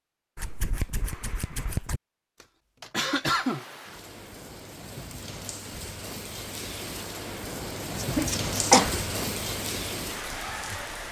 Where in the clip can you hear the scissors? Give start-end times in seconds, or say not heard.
0.3-2.0, 8.0-8.8.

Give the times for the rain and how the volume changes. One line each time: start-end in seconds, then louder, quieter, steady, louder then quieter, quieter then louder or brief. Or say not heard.
3.2-11.0 louder.